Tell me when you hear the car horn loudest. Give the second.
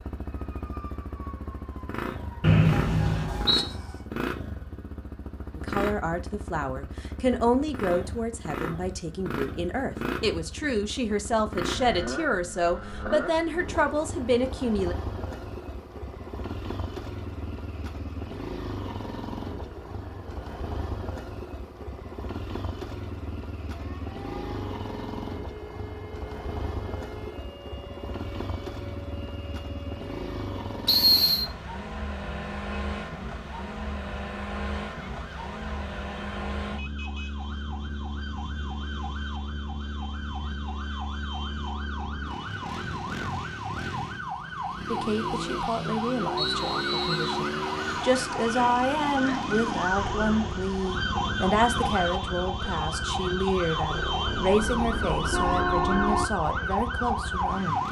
56 s.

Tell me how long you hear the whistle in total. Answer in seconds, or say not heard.
3 s.